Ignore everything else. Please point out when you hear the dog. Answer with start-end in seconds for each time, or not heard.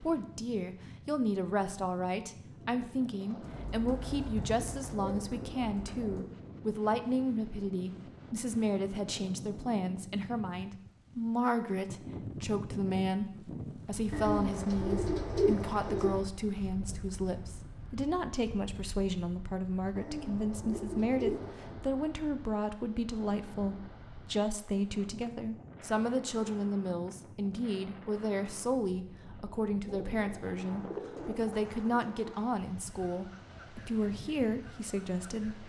not heard.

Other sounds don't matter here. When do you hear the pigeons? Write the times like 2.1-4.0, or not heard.
3.4-6.2, 14.1-16.2, 19.9-21.8, 29.9-32.4.